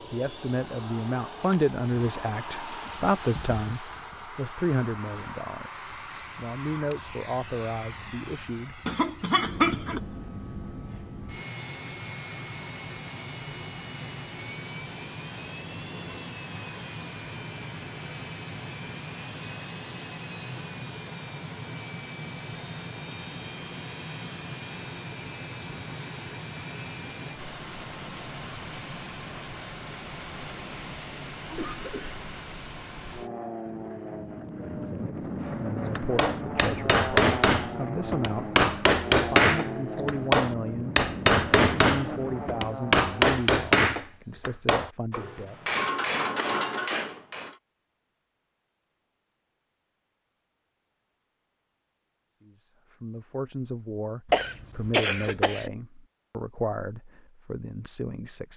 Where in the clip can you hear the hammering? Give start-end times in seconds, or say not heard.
36.0-47.5.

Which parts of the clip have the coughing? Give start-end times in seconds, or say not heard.
8.8-10.0, 31.5-32.2, 54.3-55.7.